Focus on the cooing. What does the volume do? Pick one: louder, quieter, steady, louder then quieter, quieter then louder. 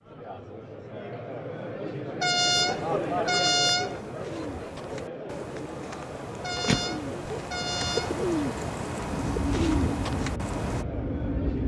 louder.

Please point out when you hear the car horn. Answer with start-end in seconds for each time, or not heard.
2.2-4.0, 6.4-8.2.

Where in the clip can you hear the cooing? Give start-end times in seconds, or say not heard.
2.8-10.8.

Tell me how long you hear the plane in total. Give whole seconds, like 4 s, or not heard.
3 s.